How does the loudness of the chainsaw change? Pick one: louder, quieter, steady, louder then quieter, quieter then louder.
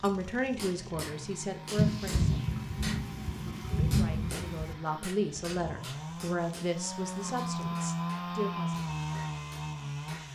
louder.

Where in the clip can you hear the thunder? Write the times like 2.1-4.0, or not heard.
1.8-4.8.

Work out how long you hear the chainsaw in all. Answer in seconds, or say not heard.
10 s.